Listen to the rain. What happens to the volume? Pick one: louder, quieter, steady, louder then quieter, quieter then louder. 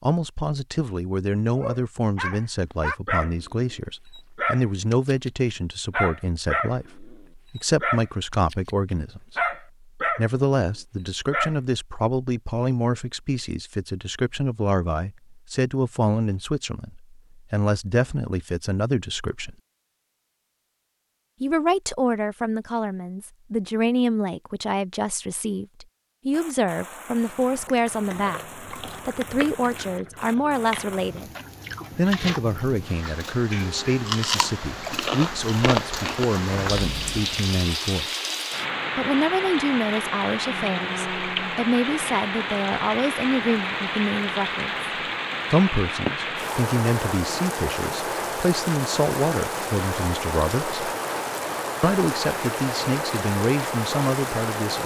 louder.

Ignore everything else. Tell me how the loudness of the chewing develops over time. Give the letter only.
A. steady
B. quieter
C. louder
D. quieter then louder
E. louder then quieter
C.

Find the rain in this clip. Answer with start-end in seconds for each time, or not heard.
26.3-54.8.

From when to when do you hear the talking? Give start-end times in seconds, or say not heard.
0.0-19.6, 21.4-31.3, 31.9-38.1, 39.0-44.9, 45.5-50.8, 51.8-54.8.